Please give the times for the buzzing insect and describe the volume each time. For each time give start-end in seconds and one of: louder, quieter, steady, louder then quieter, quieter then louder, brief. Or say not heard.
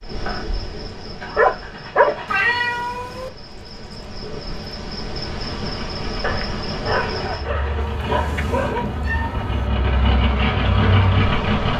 0.0-11.7 louder.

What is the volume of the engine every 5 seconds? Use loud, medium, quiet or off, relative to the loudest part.
quiet, medium, loud.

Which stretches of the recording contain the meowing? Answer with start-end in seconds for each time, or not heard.
2.2-3.3, 7.8-9.7.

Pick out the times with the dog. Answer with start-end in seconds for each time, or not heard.
1.4-2.1, 6.2-8.8.